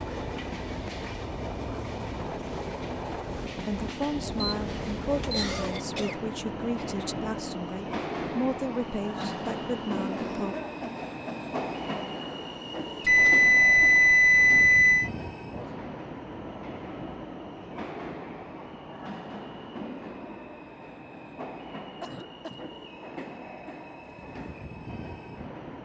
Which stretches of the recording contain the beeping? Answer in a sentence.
You can hear the beeping from 4.3 to 5.5 s and from 13.0 to 15.1 s.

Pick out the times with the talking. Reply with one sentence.
The talking can be heard from 3.6 to 10.6 s.